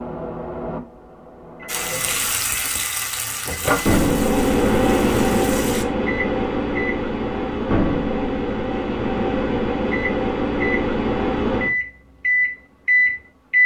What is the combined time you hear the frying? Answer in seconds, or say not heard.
4 s.